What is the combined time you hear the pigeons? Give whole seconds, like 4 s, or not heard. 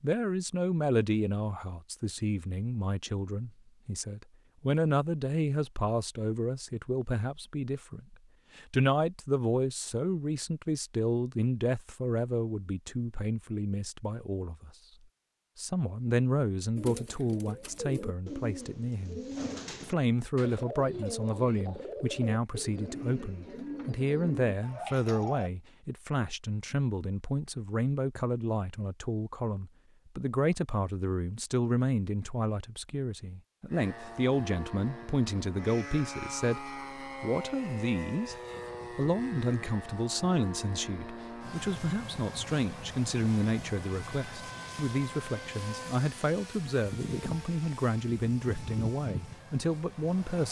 9 s.